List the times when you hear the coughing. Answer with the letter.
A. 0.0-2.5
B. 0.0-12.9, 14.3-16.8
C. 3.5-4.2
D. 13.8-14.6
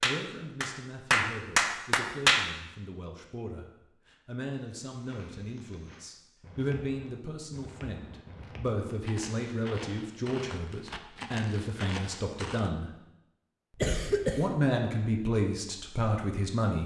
D.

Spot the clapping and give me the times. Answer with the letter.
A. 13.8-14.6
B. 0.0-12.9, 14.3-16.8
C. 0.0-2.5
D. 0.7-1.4
C.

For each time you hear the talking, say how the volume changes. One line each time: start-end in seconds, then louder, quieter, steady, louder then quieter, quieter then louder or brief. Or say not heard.
0.0-12.9 louder
14.3-16.8 brief.